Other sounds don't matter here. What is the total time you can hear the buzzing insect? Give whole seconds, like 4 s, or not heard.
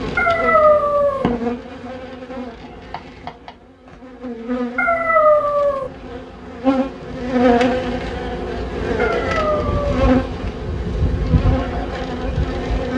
13 s.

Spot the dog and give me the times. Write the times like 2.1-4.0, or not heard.
0.1-1.3, 4.8-5.9, 8.9-10.1.